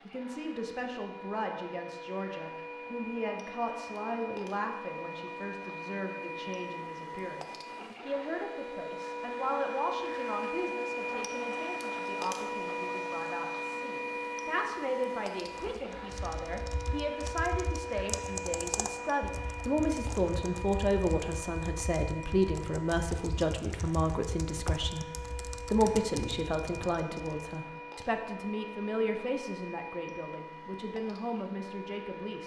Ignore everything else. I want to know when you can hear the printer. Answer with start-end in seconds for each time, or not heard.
0.0-32.4.